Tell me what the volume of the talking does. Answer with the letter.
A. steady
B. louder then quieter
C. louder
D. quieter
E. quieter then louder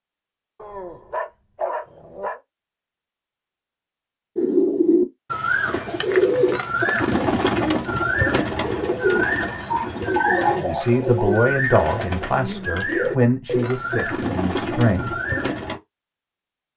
D.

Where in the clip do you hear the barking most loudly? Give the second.
10 s.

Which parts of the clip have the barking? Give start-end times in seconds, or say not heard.
0.6-2.4, 9.6-11.3.